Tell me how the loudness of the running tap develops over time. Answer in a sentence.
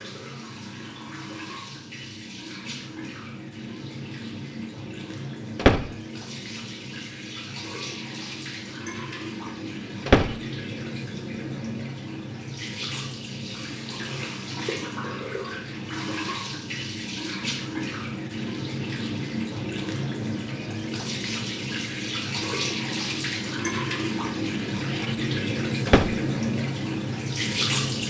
The volume of the running tap goes up.